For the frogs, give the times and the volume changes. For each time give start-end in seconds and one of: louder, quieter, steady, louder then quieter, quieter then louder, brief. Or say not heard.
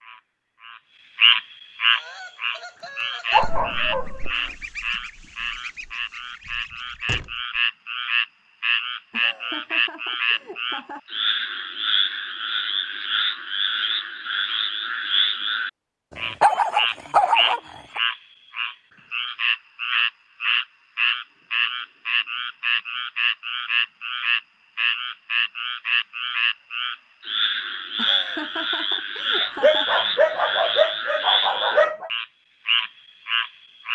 0.0-33.9 steady.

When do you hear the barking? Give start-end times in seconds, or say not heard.
3.3-4.3, 16.1-18.0, 29.4-32.1.